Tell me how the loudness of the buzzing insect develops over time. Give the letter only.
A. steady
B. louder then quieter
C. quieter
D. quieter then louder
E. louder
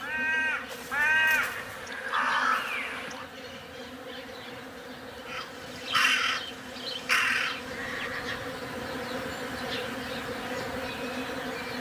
E.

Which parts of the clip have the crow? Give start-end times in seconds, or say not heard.
0.0-3.2, 5.2-8.1.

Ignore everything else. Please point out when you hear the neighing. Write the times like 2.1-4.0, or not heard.
0.9-1.9, 7.7-8.6.